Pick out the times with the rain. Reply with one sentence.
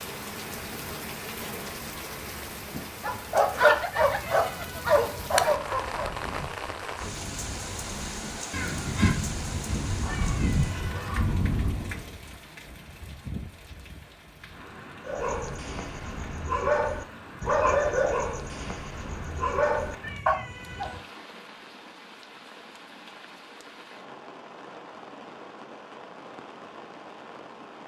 You can hear the rain from 0.0 to 27.8 s.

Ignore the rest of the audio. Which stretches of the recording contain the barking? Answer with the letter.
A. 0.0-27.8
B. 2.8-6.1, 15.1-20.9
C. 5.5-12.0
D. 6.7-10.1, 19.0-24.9
B.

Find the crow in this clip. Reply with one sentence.
You can hear the crow from 5.5 to 12.0 s.